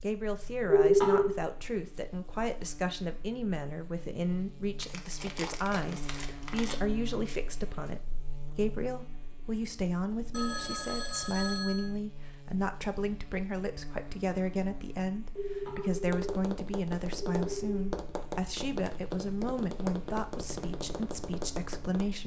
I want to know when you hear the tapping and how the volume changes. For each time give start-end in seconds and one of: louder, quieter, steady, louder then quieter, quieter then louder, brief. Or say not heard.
16.1-22.1 steady.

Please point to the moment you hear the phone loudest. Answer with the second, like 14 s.
1 s.